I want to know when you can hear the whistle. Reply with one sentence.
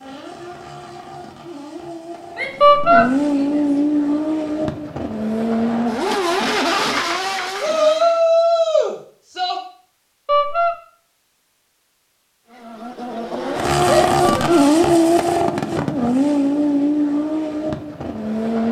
The whistle can't be heard in this clip.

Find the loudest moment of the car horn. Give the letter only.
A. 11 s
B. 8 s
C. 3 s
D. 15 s
C.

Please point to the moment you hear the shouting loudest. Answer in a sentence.
The loudest moment of the shouting is at 8 seconds.